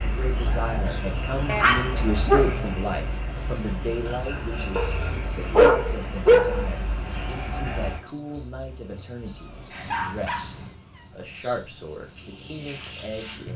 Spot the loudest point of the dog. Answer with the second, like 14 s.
6 s.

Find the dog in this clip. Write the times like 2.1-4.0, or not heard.
1.4-2.8, 4.8-6.7, 9.4-11.0.